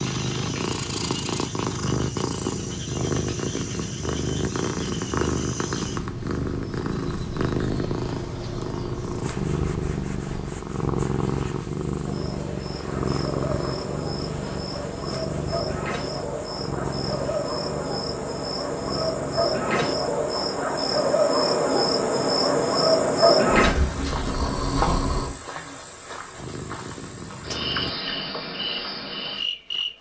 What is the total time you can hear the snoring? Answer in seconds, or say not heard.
2 s.